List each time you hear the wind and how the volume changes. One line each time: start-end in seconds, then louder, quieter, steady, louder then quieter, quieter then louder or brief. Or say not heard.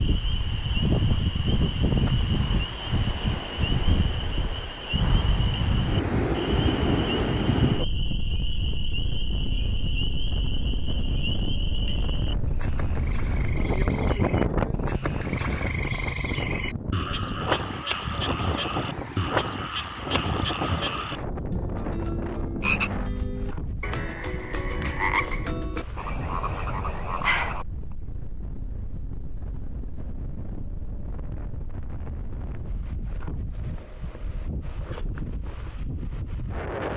0.0-36.9 quieter.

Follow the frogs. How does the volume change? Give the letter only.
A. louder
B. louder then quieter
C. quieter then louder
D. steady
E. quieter
A.